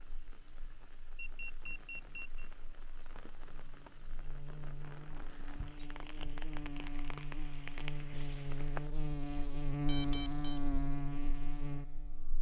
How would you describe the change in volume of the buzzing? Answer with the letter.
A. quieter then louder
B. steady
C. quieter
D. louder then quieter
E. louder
E.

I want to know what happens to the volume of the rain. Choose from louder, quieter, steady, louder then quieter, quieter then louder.
louder.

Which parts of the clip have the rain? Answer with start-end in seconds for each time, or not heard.
0.0-8.9.